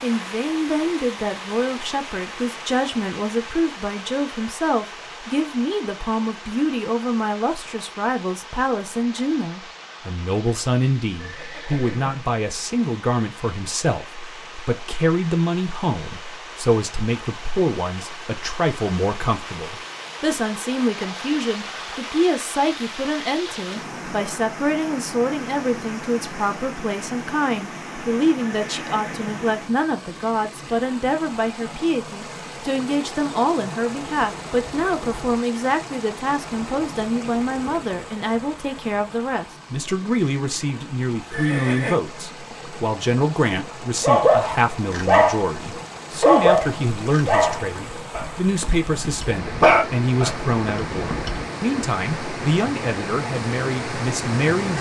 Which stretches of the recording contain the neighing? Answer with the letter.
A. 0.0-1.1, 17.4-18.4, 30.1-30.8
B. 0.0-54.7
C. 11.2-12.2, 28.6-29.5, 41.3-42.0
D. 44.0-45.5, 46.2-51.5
C.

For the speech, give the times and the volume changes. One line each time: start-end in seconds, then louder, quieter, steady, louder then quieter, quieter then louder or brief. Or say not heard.
0.0-54.7 steady.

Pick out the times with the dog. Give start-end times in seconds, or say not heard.
44.0-45.5, 46.2-51.5.